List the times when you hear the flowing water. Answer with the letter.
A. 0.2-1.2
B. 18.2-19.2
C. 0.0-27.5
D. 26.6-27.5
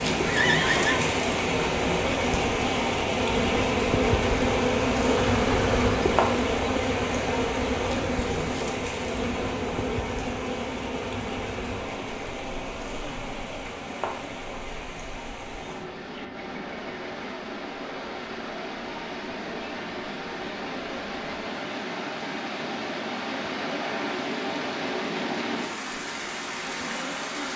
C.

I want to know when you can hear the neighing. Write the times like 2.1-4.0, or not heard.
0.2-1.2.